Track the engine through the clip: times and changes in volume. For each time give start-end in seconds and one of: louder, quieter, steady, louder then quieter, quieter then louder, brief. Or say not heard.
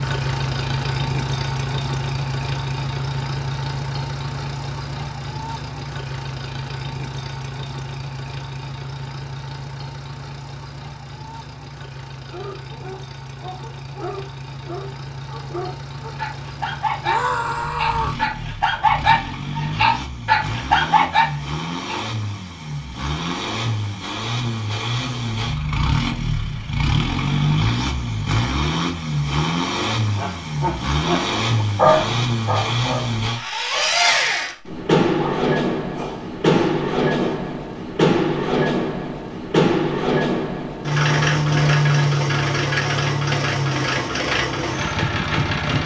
0.0-45.8 quieter then louder.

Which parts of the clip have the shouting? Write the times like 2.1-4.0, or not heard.
17.1-18.2.